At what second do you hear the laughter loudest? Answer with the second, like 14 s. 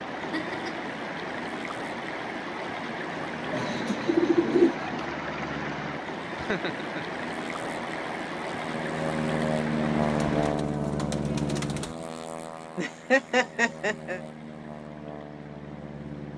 13 s.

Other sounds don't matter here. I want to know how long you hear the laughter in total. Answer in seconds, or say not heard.
3 s.